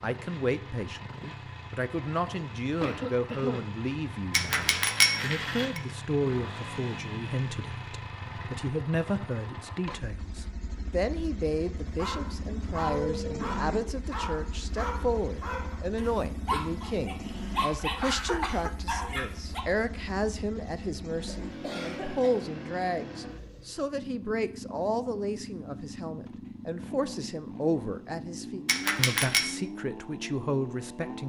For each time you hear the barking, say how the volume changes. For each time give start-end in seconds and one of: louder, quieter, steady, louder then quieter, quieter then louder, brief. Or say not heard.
11.9-19.6 quieter then louder.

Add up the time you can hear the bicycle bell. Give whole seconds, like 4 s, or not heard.
2 s.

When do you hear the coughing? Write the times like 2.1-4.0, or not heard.
2.8-3.8, 17.2-18.8, 21.2-22.5.